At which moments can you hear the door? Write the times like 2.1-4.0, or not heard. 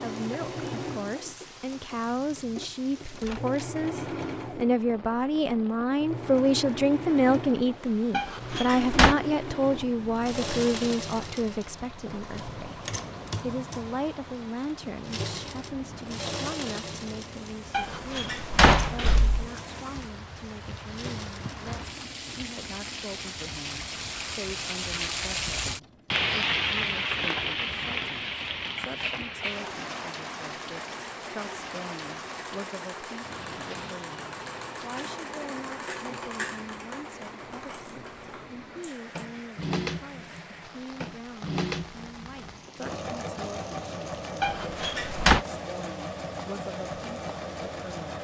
8.1-9.2, 17.7-19.4, 44.4-45.5.